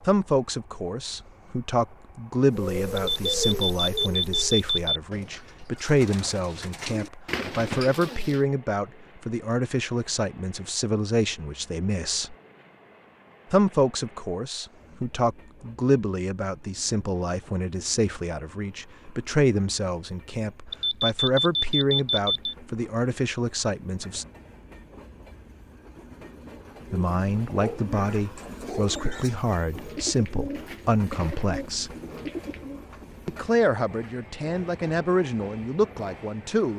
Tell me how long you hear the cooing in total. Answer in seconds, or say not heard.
12 s.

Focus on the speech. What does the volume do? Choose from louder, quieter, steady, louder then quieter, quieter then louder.
steady.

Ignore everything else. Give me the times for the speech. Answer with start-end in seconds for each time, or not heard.
0.1-12.3, 13.5-24.2, 26.9-31.9, 33.2-36.7.